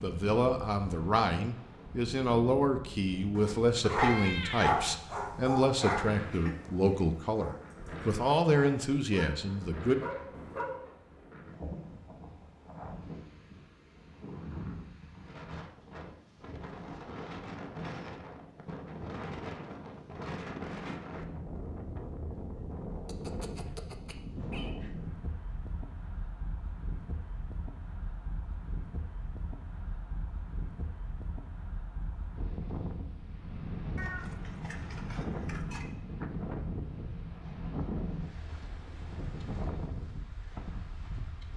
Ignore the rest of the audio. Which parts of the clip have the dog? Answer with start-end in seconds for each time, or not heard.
3.4-10.9.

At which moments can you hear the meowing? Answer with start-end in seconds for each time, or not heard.
3.8-4.7, 23.1-24.8, 34.0-35.9.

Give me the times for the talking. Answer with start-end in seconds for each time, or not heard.
0.0-9.9.